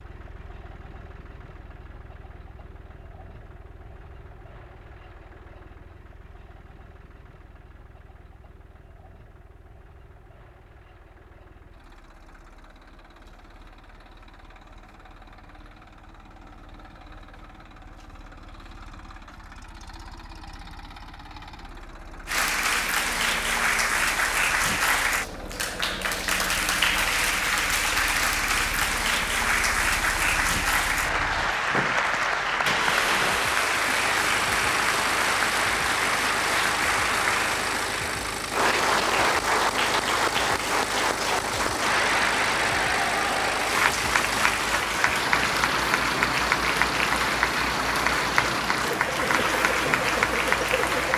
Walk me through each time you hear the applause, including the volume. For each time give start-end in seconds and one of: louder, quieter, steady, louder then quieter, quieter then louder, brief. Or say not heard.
22.2-51.1 steady.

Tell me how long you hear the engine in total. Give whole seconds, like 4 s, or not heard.
51 s.